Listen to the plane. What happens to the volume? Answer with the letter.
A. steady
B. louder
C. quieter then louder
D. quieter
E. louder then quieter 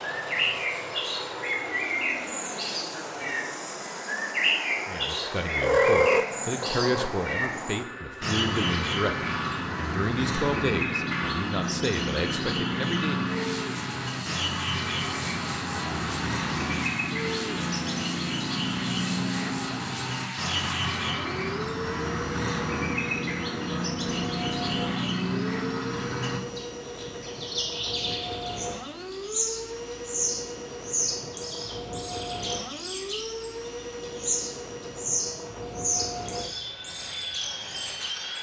A.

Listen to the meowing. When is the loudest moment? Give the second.
6 s.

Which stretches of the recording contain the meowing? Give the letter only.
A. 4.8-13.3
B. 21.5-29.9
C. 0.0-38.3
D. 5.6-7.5
D.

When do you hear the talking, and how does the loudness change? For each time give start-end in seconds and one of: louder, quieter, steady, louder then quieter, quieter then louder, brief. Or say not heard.
4.8-13.3 steady.